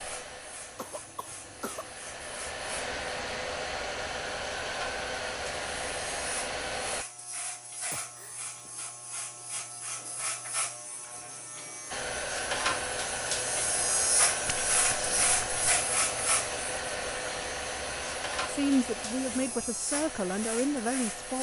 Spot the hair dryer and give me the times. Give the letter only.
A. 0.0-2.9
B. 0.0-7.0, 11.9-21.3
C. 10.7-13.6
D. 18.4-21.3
B.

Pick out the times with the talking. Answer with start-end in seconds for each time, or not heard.
18.4-21.3.